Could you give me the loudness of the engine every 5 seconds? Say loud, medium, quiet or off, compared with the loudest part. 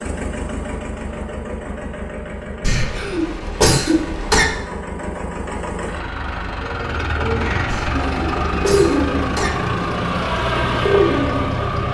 medium, loud, loud.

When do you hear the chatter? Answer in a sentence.
You can't hear the chatter here.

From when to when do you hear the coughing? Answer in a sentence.
You can hear the coughing from 2.6 to 4.5 s and from 7.7 to 9.5 s.